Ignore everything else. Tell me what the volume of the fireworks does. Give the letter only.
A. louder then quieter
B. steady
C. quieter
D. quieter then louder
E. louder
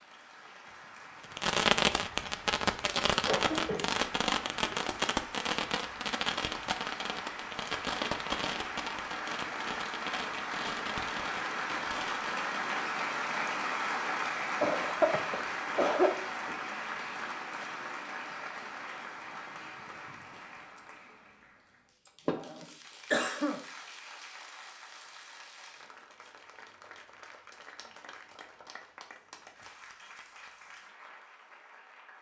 C.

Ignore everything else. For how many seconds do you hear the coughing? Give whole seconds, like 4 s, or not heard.
5 s.